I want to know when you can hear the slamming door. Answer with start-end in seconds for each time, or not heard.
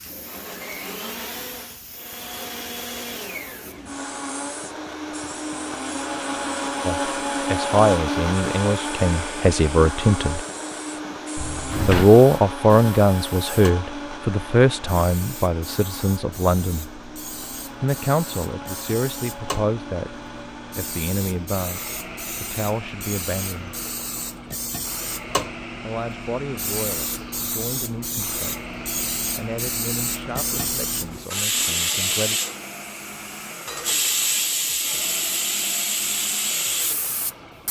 11.3-12.1.